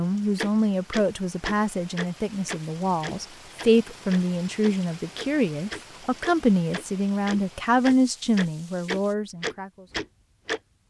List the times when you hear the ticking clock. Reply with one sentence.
You can hear the ticking clock from 0.3 to 10.6 s.